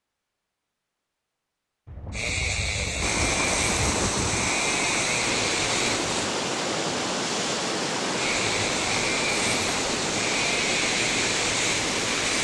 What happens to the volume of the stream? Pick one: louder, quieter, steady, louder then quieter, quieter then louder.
steady.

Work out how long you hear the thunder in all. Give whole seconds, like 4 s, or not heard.
3 s.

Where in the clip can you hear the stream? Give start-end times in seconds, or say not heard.
3.0-12.3.